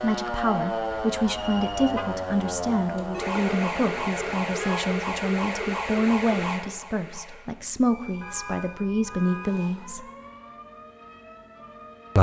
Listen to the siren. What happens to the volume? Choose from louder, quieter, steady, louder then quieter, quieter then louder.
quieter.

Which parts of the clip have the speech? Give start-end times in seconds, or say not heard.
0.0-10.1.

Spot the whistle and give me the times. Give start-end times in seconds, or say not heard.
not heard.